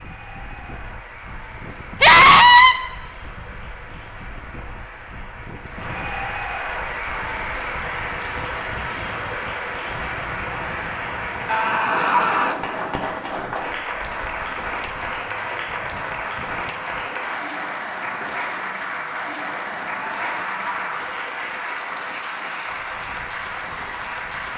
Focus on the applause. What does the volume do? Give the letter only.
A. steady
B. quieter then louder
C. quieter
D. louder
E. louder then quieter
D.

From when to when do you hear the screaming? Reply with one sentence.
You can hear the screaming from 2.0 to 2.8 s, from 11.4 to 12.6 s and from 20.1 to 21.1 s.